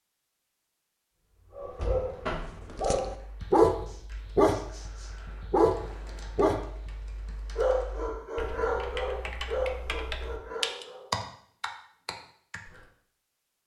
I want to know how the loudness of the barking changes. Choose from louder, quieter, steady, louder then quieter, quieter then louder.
louder then quieter.